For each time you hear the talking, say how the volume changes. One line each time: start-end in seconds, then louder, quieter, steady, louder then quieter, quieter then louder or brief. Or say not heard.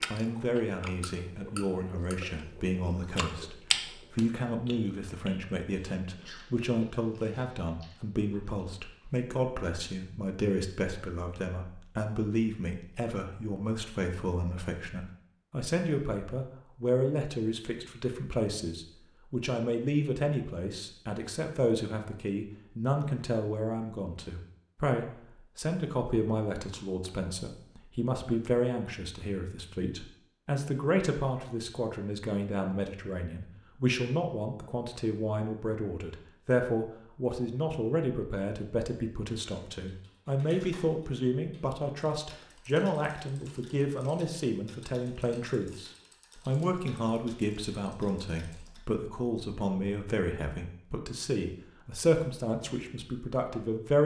0.1-54.0 steady.